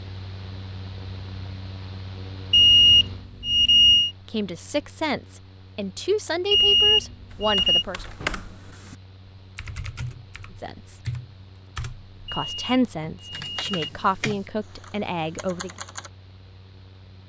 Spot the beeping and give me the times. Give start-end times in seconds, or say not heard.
2.5-4.1, 6.5-7.8, 12.2-13.8.